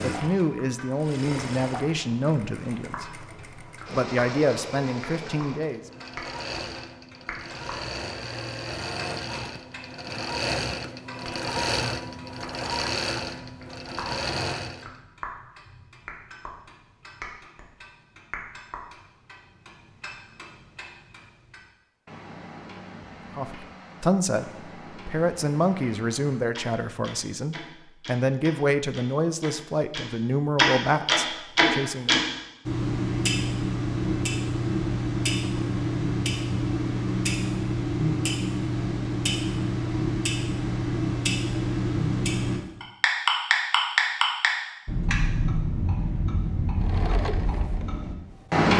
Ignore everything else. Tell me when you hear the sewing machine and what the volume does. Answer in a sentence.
The sewing machine can be heard from 0.0 to 14.9 s, getting louder; and briefly from 46.8 to 48.7 s.